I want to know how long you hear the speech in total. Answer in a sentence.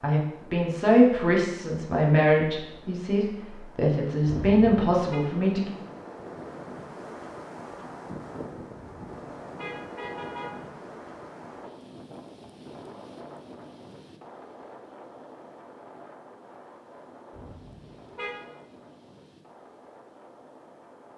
The speech can be heard for 6 seconds in total.